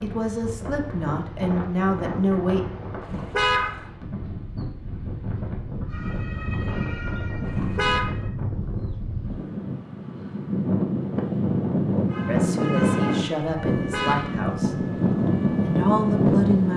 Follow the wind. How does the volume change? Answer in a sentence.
The volume of the wind goes up.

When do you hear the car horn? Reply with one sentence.
You can hear the car horn from 3.0 to 3.9 s, from 7.5 to 8.1 s and from 13.8 to 14.2 s.